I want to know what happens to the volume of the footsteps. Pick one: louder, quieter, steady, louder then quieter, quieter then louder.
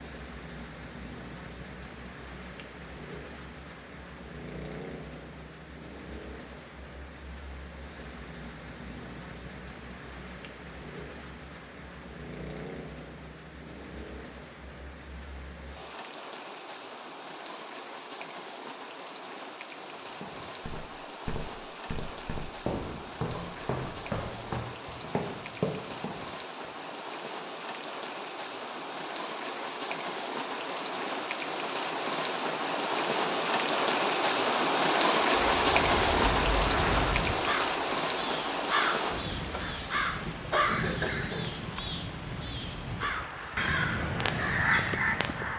louder.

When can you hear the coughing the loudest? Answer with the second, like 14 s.
41 s.